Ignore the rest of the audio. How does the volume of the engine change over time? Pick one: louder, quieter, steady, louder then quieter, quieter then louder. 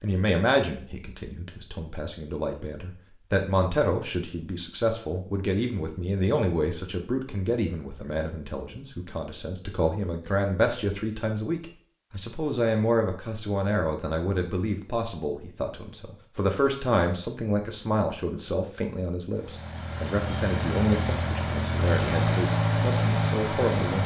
louder.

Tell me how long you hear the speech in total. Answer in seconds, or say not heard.
24 s.